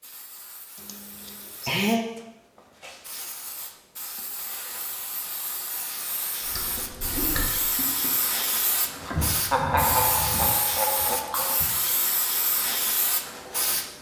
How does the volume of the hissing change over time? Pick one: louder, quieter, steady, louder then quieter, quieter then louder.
louder.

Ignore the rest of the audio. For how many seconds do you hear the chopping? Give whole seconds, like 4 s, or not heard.
not heard.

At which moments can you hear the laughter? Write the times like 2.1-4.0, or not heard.
0.8-2.0, 9.1-11.6.